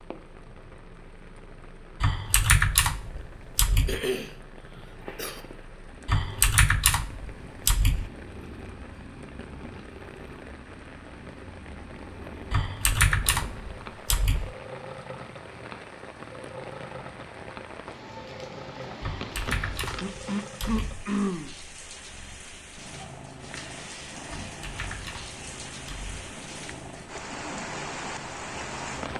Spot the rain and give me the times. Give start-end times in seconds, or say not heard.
0.0-29.1.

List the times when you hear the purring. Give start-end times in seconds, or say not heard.
0.0-29.1.